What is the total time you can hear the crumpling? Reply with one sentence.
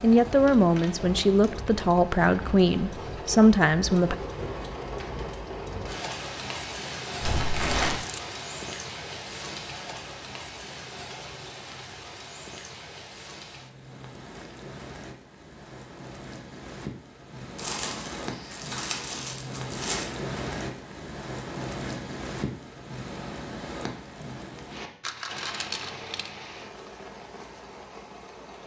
The crumpling can be heard for 3 seconds in total.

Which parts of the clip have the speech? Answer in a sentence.
You can hear the speech from 0.0 to 4.2 s.